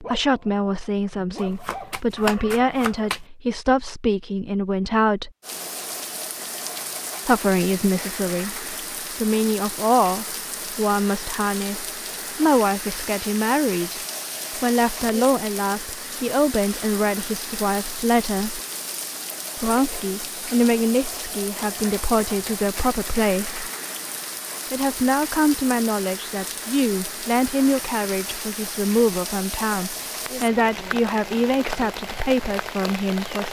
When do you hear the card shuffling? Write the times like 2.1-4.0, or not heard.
1.4-3.2, 21.6-23.1.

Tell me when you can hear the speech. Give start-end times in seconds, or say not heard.
0.0-5.3, 7.2-18.6, 19.6-23.6, 24.7-33.4.